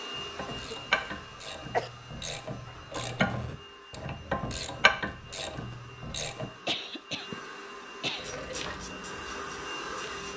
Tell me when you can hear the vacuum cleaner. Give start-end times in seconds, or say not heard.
0.0-10.3.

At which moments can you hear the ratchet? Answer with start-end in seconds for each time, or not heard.
0.1-6.5, 8.2-10.3.